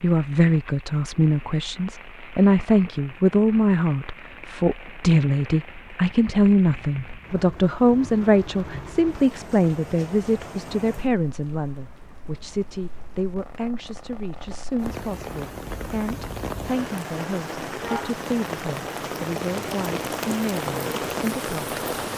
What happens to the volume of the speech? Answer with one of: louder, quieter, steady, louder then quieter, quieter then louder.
quieter.